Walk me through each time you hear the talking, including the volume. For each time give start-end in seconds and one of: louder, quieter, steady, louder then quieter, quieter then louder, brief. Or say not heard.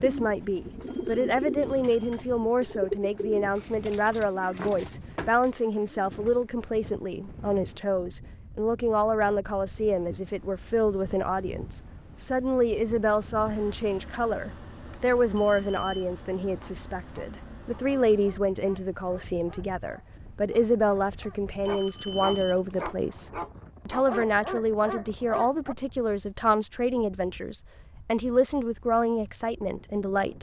0.0-30.3 steady.